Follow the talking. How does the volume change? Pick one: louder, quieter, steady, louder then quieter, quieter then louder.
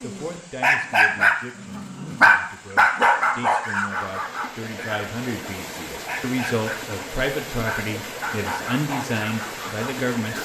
louder.